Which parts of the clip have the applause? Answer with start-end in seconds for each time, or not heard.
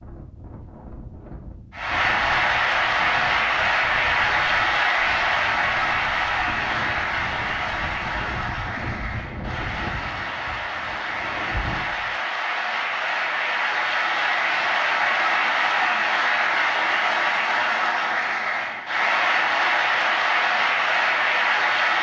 1.7-21.9.